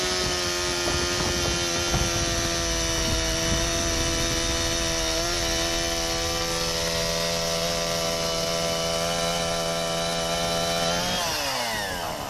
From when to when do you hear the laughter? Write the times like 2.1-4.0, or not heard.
not heard.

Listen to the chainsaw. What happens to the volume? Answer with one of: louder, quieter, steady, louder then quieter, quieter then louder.
steady.